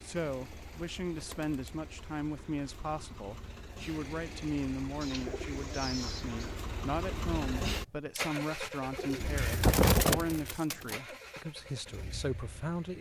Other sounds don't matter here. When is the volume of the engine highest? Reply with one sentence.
The loudest moment of the engine is at 8 seconds.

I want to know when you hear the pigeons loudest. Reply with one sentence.
The volume of the pigeons peaks at 10 seconds.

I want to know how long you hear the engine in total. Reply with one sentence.
You can hear the engine for 13 seconds altogether.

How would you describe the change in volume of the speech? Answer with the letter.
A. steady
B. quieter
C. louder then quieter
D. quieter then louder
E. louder
A.